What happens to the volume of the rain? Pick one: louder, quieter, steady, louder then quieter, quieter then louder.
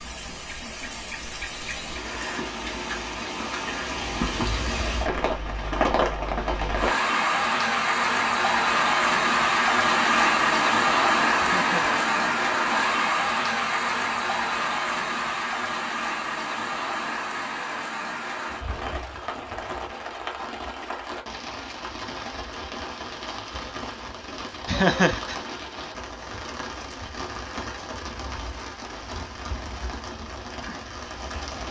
louder then quieter.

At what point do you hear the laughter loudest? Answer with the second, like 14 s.
25 s.